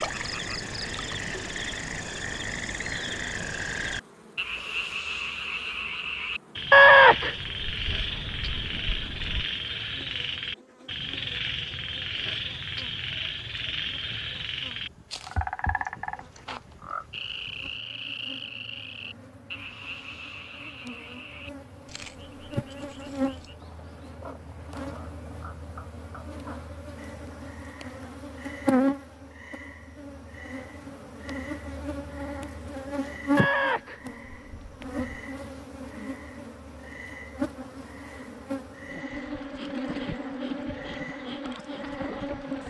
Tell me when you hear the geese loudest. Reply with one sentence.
The volume of the geese peaks at 7 seconds.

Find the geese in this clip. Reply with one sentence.
The geese can be heard from 6.7 to 9.4 s and from 33.4 to 35.1 s.